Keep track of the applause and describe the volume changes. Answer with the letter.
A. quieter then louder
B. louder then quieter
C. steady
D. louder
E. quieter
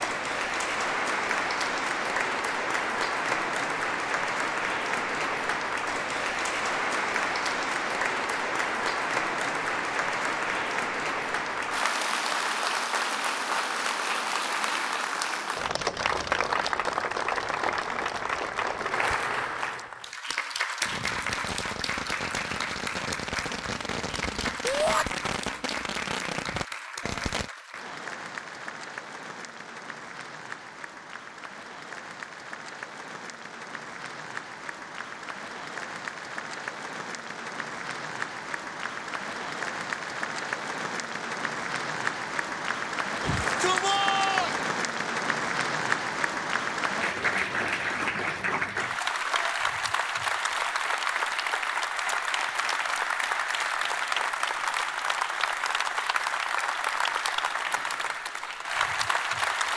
A.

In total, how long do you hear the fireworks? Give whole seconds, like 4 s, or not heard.
7 s.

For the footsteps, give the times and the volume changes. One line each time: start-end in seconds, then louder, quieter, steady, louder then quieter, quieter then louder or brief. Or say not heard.
not heard.